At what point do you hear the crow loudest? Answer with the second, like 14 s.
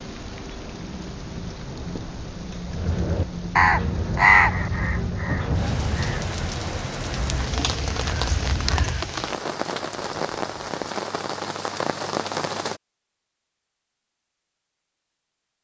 4 s.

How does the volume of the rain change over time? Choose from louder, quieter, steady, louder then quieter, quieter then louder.
louder.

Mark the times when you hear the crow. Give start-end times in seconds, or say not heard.
2.7-9.1.